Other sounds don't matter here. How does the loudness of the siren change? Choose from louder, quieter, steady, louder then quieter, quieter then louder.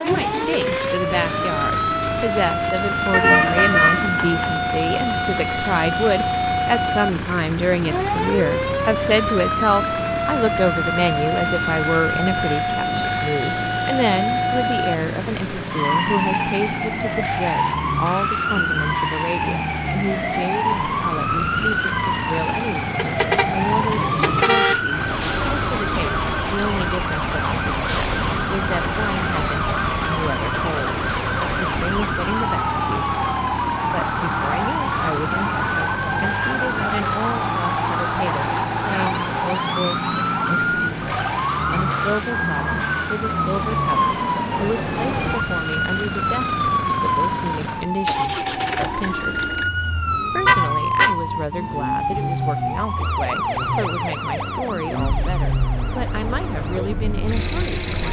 steady.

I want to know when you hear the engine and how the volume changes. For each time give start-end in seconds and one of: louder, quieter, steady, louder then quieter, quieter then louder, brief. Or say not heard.
0.0-58.0 steady.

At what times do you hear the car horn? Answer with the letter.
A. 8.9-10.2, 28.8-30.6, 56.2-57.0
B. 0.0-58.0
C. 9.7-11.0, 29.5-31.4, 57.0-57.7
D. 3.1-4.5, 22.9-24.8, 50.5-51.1
D.